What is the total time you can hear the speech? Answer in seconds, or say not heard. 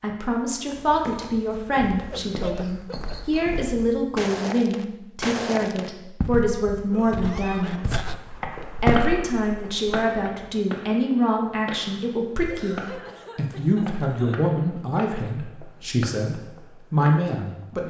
17 s.